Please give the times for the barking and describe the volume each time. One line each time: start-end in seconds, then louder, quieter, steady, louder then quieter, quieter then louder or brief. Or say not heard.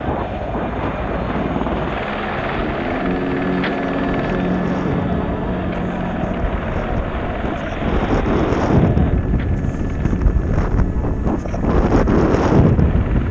not heard.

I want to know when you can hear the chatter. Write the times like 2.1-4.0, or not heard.
0.0-9.2.